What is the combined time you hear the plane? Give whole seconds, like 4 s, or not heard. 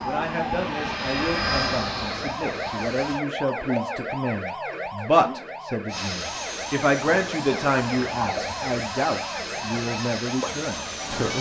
9 s.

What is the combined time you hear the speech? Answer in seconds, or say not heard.
11 s.